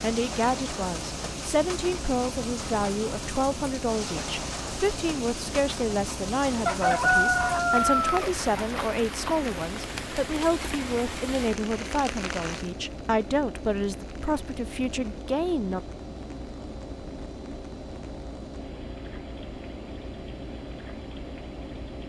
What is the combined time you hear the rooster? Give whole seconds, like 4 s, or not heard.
2 s.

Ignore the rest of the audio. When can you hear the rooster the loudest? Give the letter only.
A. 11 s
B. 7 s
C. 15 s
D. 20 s
B.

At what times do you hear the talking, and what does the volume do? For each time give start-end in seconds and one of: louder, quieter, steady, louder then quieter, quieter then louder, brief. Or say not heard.
0.0-15.8 steady.